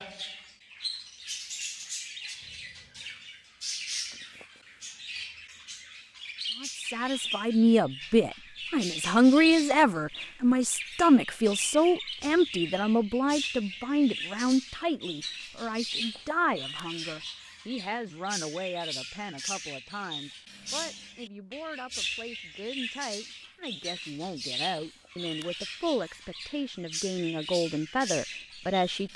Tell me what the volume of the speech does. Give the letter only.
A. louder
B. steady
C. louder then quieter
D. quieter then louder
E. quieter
D.